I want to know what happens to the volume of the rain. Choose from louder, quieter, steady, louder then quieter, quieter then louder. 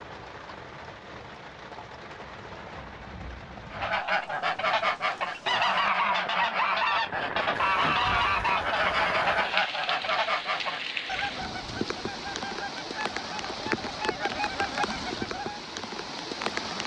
louder.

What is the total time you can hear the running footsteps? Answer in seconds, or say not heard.
not heard.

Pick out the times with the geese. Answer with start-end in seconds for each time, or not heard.
3.7-15.6.